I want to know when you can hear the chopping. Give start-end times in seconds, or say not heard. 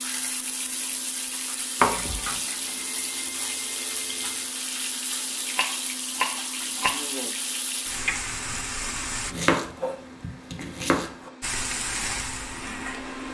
1.8-2.4, 5.5-7.3, 9.3-11.3.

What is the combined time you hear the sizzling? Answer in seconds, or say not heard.
11 s.